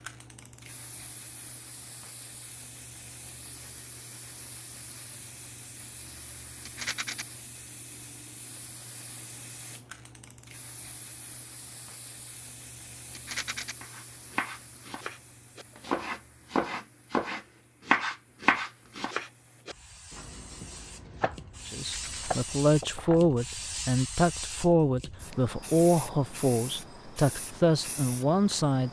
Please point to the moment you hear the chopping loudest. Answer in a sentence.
The loudest moment of the chopping is at 18 seconds.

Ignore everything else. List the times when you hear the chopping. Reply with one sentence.
The chopping can be heard from 13.8 to 23.3 s.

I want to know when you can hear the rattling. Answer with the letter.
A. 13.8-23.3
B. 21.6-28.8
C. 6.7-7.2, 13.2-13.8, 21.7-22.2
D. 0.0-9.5
C.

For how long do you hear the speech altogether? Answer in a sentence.
You can hear the speech for 7 seconds altogether.